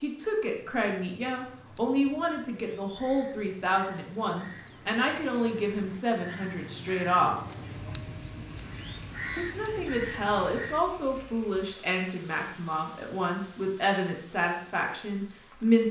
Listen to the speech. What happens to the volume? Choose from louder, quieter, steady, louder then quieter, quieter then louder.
steady.